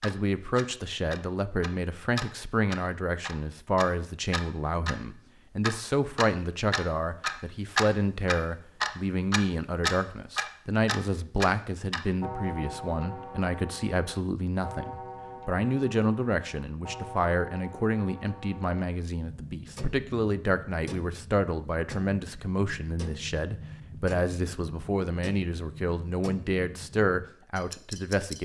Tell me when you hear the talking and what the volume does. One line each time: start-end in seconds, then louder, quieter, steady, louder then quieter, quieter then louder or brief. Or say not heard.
0.0-28.4 steady.